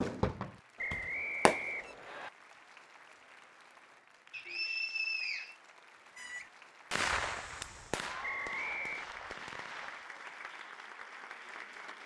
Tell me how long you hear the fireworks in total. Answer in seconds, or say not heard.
6 s.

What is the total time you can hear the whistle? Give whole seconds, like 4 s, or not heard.
4 s.